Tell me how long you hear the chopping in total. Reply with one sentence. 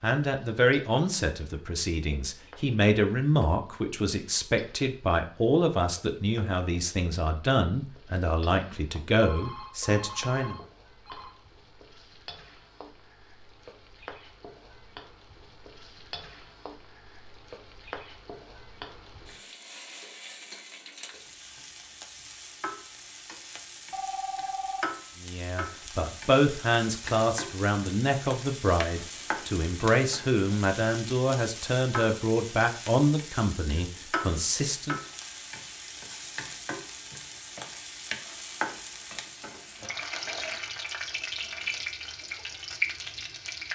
You can't hear the chopping here.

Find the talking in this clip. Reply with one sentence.
You can hear the talking from 0.0 to 10.6 s and from 25.2 to 35.0 s.